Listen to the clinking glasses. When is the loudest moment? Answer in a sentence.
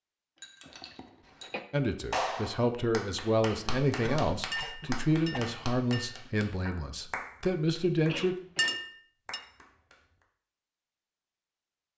The loudest moment of the clinking glasses is at 9 seconds.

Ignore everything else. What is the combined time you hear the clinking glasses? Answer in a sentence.
You can hear the clinking glasses for 4 seconds altogether.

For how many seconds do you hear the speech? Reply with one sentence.
You can hear the speech for 7 seconds altogether.